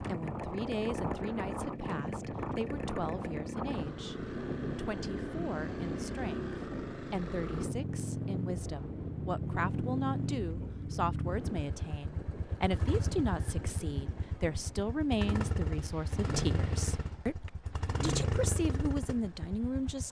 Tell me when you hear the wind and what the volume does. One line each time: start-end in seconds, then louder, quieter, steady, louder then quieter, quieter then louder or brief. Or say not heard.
0.0-17.2 quieter.